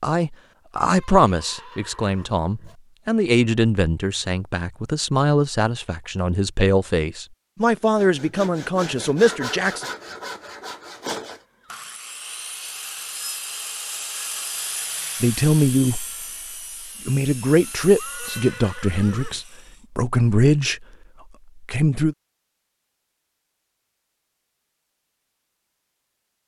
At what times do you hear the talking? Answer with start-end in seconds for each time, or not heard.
0.0-9.8, 15.2-16.1, 17.1-20.9, 21.6-22.1.